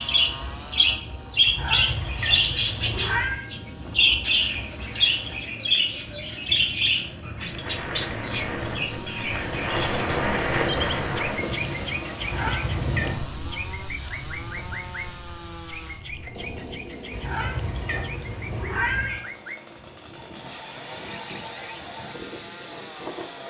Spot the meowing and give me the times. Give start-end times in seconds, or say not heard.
1.4-3.5, 12.2-13.2, 17.1-19.2.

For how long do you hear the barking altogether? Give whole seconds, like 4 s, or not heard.
not heard.